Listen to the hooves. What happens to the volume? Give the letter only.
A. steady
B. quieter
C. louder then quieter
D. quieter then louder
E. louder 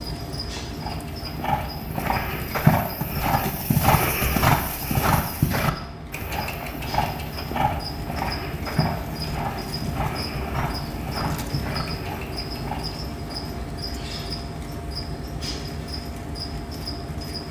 B.